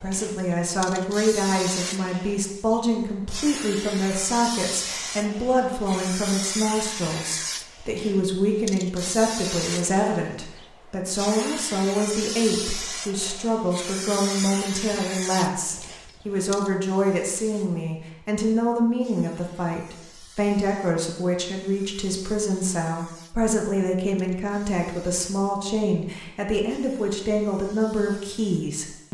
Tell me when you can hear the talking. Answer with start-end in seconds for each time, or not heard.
0.0-29.0.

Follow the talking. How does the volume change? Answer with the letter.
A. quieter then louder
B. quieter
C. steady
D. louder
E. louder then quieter
C.